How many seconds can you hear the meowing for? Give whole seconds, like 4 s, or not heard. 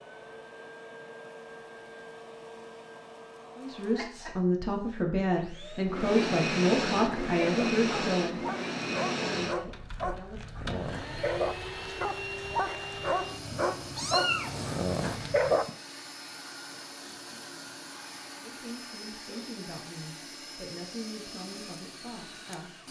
2 s.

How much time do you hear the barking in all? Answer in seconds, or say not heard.
9 s.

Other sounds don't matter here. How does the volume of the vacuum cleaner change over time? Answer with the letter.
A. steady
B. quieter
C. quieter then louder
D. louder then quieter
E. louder
D.